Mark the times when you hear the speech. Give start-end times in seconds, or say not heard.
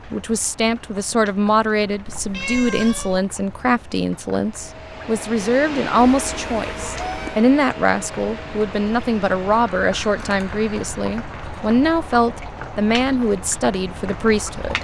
0.1-14.7.